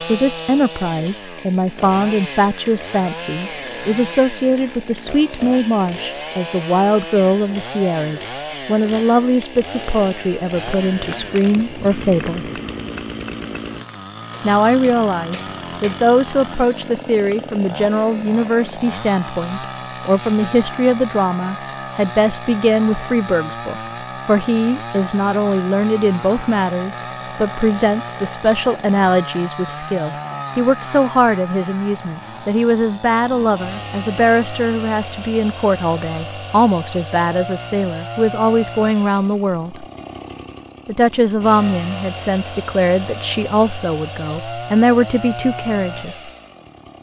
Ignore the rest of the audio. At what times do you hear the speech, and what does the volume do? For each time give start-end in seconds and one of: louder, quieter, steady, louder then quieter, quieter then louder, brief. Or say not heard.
0.0-12.5 steady
14.4-39.9 steady
40.9-46.3 steady.